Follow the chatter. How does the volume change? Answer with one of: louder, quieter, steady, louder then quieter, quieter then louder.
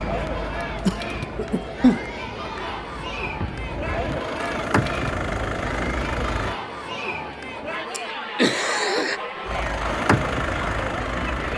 steady.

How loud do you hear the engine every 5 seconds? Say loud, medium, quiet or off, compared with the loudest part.
medium, loud, loud.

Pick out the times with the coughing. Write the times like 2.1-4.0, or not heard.
0.8-2.0, 7.9-9.2.